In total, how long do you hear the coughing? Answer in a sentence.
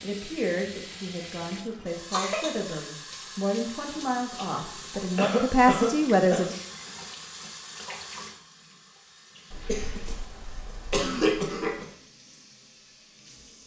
The coughing can be heard for 4 seconds in total.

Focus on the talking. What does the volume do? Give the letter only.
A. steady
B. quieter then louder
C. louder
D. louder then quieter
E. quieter
C.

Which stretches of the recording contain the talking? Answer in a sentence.
You can hear the talking from 0.0 to 6.5 s.